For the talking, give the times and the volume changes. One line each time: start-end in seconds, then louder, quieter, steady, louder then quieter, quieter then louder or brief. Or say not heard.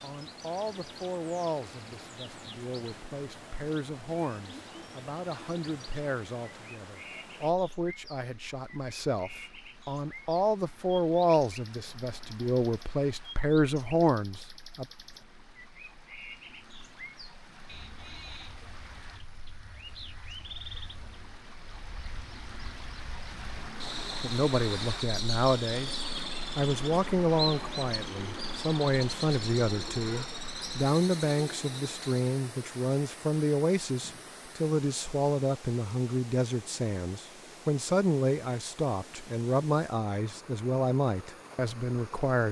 0.0-14.8 louder
24.1-42.4 steady.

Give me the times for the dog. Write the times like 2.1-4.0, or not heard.
not heard.